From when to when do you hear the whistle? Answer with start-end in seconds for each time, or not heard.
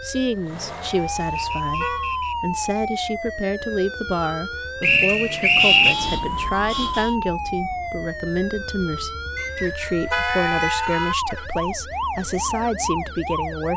1.4-2.4, 4.8-6.0, 9.3-11.1.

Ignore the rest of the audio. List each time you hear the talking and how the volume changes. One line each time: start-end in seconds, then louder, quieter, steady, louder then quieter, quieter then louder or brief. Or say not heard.
0.0-13.7 steady.